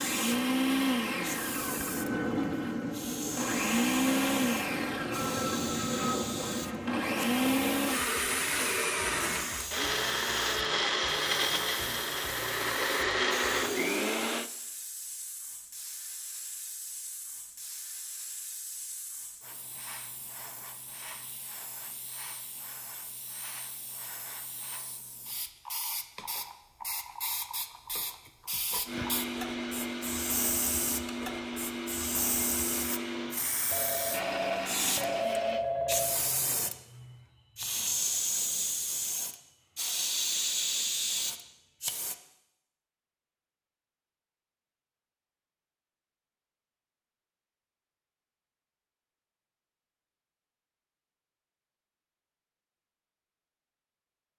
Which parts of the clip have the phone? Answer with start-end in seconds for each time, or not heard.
33.7-36.2.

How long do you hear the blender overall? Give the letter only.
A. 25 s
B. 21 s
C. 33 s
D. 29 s
B.